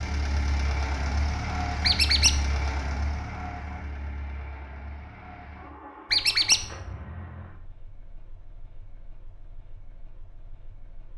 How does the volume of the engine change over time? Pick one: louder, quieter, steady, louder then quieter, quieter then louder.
quieter.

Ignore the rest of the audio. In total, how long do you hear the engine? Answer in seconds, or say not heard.
11 s.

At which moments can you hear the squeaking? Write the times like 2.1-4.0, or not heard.
1.8-2.4, 6.1-6.7.